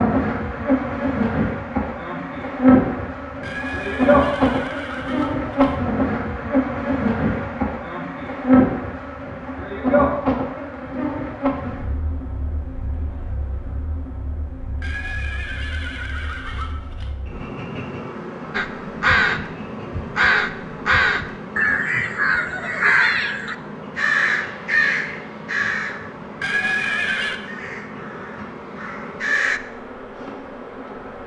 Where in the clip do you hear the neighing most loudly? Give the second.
27 s.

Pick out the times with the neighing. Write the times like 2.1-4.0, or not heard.
3.4-5.8, 14.8-17.1, 26.4-27.4.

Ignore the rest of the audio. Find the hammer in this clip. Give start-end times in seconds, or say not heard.
not heard.